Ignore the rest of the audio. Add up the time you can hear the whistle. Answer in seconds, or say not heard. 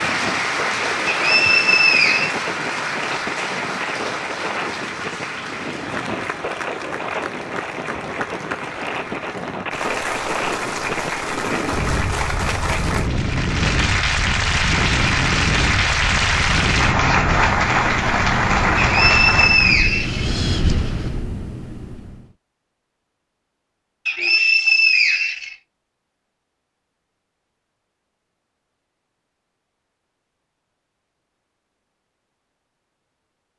5 s.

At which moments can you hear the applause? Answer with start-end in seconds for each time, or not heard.
0.0-19.9.